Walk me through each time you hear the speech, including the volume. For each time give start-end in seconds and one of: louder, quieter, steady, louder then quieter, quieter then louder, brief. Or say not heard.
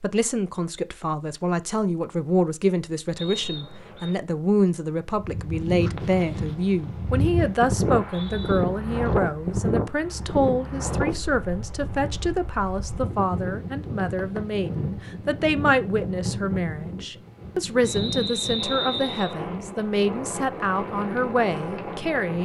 0.0-22.4 steady.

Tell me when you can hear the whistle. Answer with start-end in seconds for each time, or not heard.
3.1-4.2, 7.8-8.6, 17.8-19.4.